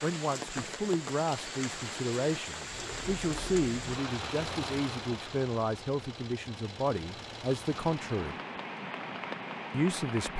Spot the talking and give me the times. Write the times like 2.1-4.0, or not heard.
0.0-8.3, 9.7-10.3.